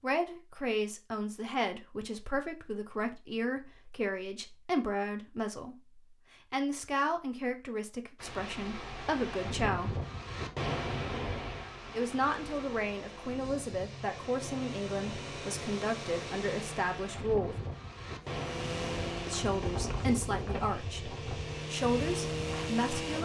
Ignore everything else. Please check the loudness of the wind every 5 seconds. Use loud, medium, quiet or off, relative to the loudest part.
off, loud, loud, loud, loud.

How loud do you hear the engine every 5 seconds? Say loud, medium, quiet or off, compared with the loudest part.
off, off, medium, loud, loud.